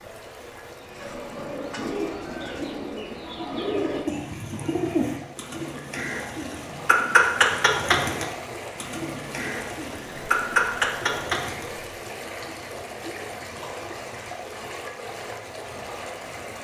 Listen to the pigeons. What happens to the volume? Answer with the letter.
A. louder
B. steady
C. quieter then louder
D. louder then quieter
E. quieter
A.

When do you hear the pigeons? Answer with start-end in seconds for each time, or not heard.
0.8-11.7.